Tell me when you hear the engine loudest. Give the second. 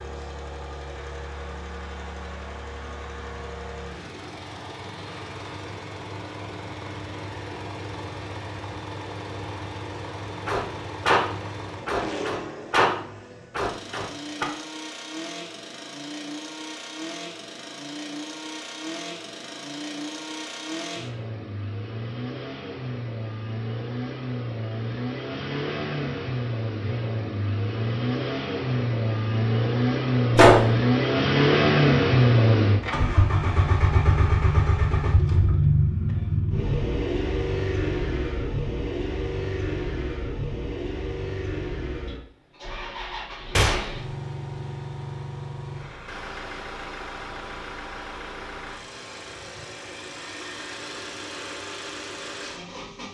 32 s.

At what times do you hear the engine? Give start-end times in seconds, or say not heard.
0.0-53.0.